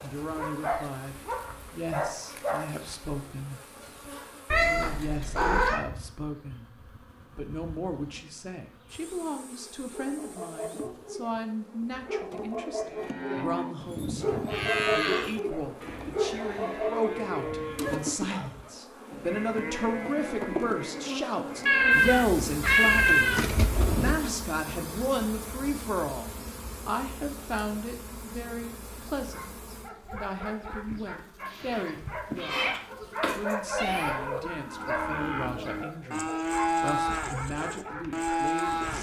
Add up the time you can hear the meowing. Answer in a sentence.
The meowing can be heard for 5 seconds in total.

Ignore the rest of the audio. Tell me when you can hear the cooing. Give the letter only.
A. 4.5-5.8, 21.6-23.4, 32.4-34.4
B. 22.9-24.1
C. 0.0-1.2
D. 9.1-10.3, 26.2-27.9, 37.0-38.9
B.